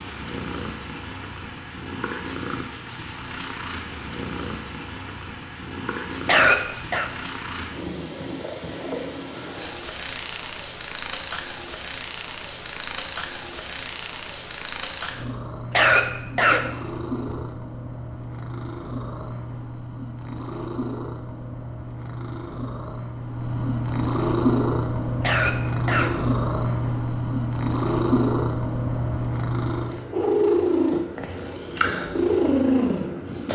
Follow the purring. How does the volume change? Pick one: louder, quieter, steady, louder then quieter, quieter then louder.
louder.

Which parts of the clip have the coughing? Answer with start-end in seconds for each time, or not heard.
6.2-7.1, 15.7-17.2, 25.2-26.1.